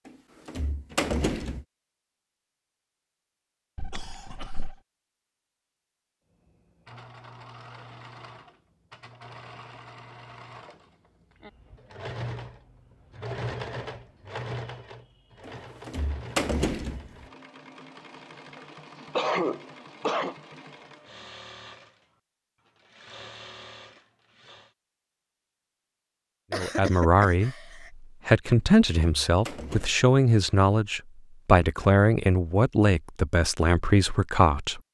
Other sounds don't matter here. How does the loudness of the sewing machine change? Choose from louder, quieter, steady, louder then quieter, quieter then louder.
louder then quieter.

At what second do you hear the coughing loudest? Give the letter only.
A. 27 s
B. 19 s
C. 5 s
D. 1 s
B.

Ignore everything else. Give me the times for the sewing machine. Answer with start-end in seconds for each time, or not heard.
6.3-24.8.